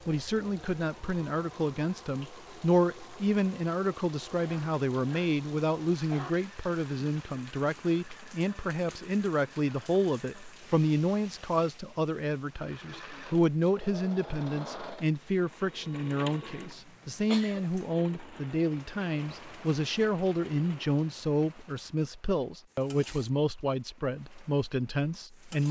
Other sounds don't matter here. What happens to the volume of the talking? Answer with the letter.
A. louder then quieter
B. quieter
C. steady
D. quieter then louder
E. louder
C.